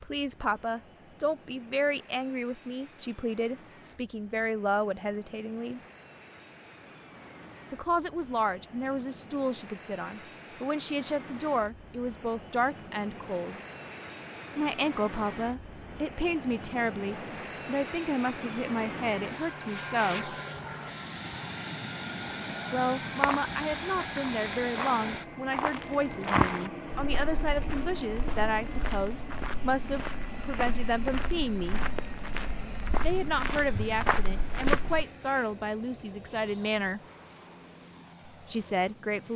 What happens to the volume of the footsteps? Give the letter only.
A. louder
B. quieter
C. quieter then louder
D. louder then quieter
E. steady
C.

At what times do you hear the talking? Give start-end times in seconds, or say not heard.
0.0-5.8, 7.7-13.6, 14.6-20.4, 22.7-31.8, 33.0-37.0, 38.3-39.3.